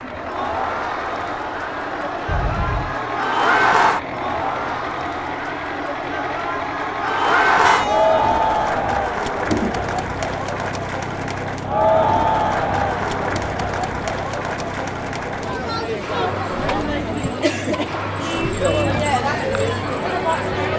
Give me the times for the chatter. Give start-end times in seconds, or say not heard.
0.0-20.7.